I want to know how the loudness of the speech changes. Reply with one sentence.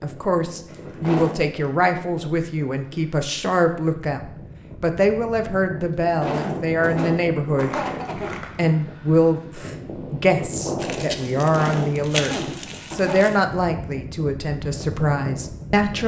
The loudness of the speech stays about the same.